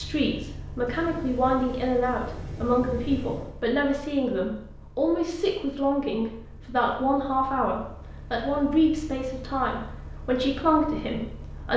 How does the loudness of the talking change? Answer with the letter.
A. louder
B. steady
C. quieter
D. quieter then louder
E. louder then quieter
B.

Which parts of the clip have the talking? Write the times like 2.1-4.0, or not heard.
0.0-11.7.